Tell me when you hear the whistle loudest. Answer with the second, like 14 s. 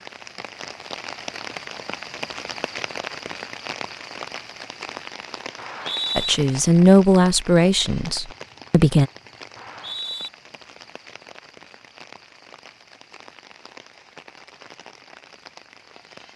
6 s.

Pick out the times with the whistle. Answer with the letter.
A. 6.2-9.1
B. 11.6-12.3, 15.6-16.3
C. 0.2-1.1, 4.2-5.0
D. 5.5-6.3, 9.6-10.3
D.